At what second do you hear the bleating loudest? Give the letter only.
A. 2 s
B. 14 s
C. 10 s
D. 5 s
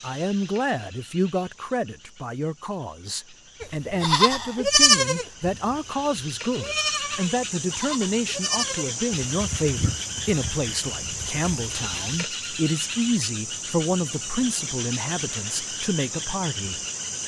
D.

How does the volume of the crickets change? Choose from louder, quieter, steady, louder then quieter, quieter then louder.
louder.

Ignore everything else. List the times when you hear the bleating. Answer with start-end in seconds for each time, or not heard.
3.6-5.8, 6.5-12.2.